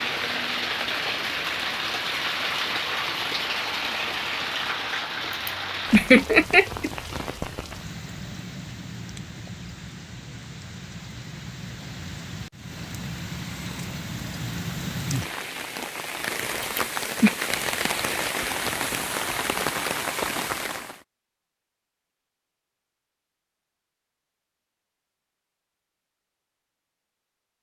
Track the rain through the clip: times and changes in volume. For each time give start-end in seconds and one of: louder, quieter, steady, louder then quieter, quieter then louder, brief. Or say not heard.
0.0-21.0 quieter then louder.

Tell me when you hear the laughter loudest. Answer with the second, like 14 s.
6 s.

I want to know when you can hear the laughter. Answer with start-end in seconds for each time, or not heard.
5.3-6.9, 16.6-17.4.